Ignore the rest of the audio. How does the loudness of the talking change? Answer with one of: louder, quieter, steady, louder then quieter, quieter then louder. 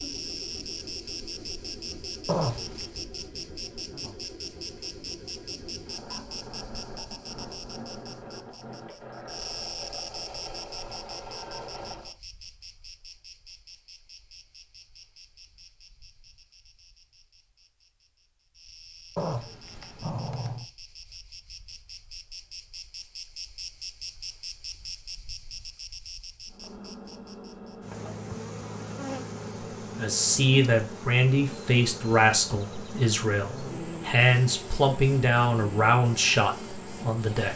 steady.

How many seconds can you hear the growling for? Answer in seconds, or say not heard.
2 s.